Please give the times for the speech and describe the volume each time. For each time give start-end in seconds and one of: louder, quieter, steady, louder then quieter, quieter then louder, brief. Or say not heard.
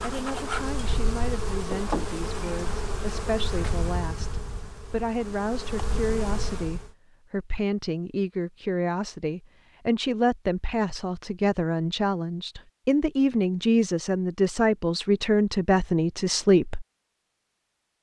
0.0-16.9 louder.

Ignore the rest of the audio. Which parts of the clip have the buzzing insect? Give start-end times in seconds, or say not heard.
0.0-7.0.